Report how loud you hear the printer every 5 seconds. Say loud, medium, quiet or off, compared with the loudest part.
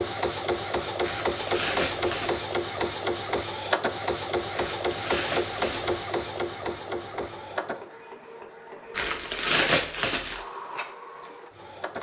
loud, loud, medium.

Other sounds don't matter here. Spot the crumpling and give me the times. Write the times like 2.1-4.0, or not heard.
1.0-2.4, 4.5-6.0, 8.9-10.4.